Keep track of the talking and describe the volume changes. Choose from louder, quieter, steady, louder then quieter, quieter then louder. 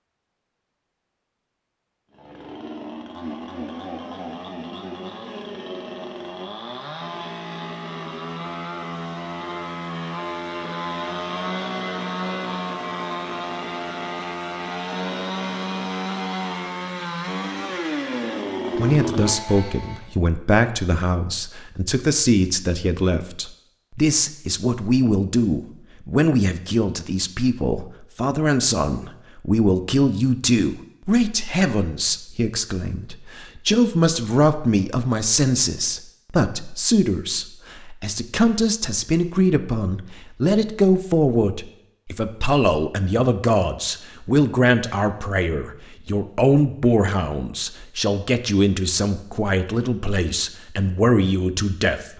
steady.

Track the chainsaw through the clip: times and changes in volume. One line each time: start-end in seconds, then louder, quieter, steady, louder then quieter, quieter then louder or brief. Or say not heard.
2.1-20.1 louder.